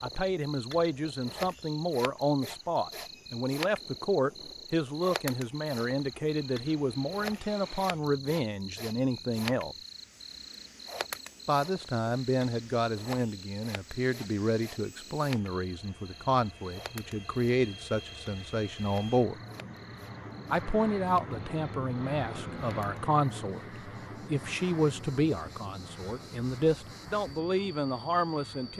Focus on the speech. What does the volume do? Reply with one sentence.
The volume of the speech stays about the same.